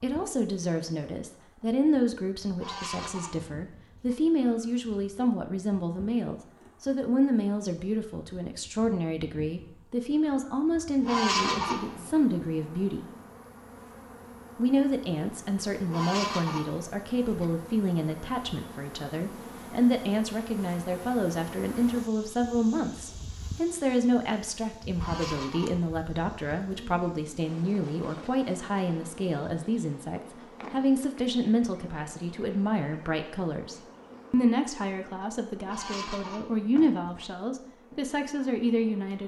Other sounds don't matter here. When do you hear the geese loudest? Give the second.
11 s.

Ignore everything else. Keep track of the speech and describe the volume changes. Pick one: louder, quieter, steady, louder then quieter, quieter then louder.
steady.